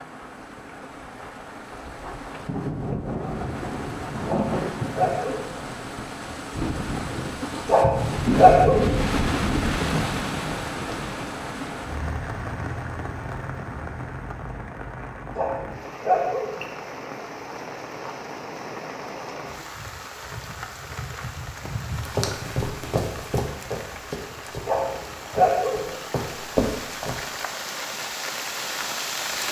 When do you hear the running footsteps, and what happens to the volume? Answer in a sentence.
You can hear the running footsteps from 21.9 to 27.2 s, getting quieter then louder.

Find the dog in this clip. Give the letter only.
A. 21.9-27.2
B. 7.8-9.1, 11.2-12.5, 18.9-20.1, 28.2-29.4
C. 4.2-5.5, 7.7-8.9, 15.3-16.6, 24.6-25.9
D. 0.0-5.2
C.